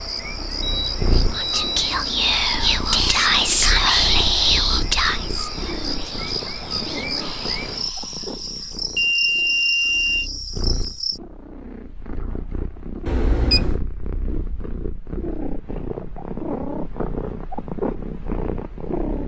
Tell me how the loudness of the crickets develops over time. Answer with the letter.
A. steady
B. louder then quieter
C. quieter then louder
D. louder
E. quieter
A.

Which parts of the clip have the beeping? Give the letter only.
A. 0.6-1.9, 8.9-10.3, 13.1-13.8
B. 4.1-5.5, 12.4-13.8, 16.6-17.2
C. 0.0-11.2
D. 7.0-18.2
A.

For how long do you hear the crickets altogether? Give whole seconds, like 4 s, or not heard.
11 s.